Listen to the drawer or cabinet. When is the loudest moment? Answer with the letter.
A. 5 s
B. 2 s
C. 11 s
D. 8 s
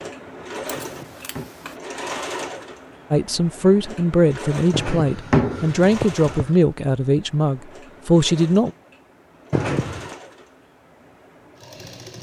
A.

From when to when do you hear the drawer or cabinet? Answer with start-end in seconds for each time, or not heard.
0.8-1.5, 4.7-6.5, 9.5-10.2.